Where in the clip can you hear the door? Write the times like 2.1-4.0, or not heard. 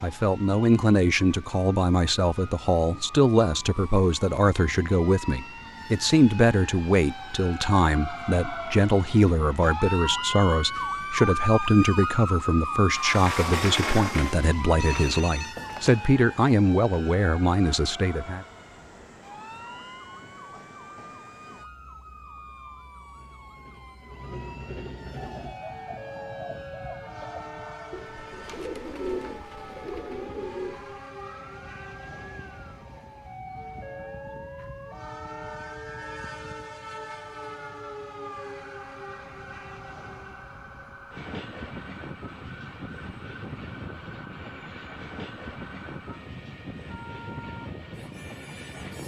12.9-15.2.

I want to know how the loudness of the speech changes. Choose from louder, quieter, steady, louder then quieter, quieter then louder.
steady.